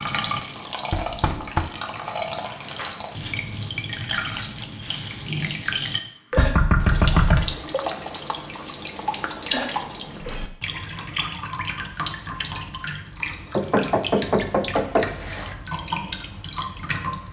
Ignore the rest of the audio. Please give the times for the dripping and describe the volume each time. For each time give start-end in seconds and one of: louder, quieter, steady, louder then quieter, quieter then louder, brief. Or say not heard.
0.0-17.2 steady.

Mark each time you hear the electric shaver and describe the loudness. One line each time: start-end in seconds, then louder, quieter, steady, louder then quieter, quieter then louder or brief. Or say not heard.
not heard.